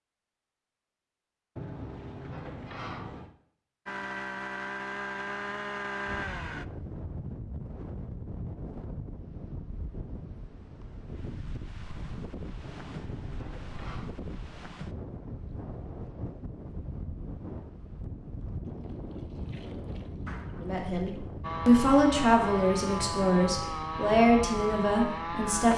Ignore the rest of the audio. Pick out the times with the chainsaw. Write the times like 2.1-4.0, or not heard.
3.9-6.7, 21.4-25.7.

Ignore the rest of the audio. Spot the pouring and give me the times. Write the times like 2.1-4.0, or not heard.
18.6-21.2.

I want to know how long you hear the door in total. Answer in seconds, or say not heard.
4 s.